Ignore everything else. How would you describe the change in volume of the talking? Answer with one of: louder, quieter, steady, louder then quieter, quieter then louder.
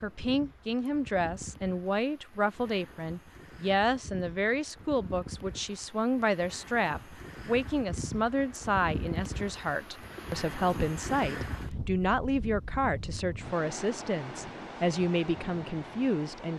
steady.